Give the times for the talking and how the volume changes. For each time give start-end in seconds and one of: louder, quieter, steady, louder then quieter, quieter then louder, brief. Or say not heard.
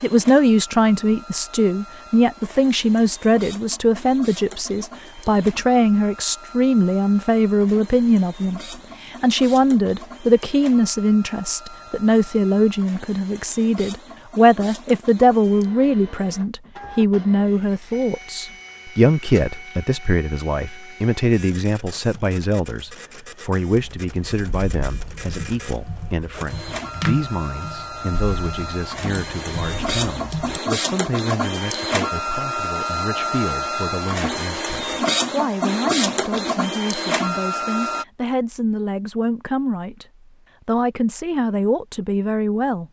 0.0-40.0 quieter
40.6-42.8 brief.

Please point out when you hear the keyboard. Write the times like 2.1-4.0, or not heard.
23.8-30.6.